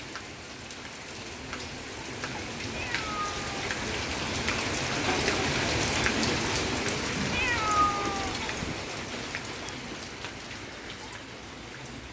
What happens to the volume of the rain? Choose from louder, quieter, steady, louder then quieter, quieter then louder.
louder then quieter.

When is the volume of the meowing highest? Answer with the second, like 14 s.
8 s.